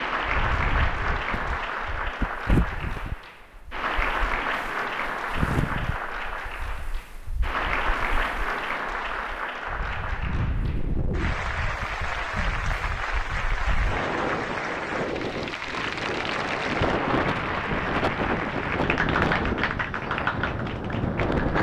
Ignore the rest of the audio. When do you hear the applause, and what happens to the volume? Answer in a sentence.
The applause can be heard from 0.0 to 21.5 s, at a steady volume.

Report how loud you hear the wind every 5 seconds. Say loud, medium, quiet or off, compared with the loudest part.
medium, medium, medium, loud, loud.